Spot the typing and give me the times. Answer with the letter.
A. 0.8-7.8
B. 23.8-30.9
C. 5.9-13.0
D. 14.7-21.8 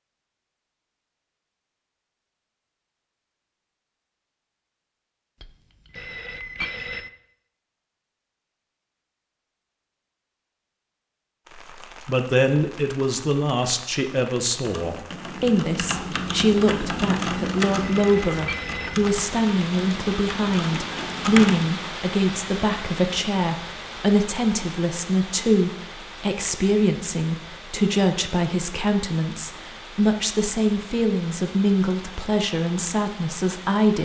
D.